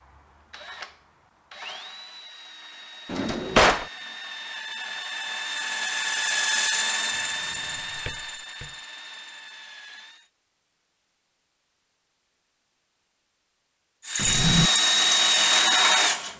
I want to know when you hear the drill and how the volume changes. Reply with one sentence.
You can hear the drill from 0.0 to 10.3 s, getting louder then quieter; and briefly from 14.1 to 16.3 s.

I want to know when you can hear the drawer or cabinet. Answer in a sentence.
The drawer or cabinet can be heard from 3.0 to 3.9 s, from 7.5 to 8.7 s and from 14.2 to 14.7 s.